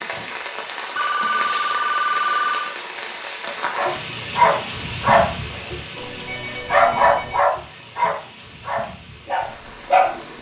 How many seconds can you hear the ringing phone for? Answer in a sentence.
The ringing phone can be heard for 3 seconds in total.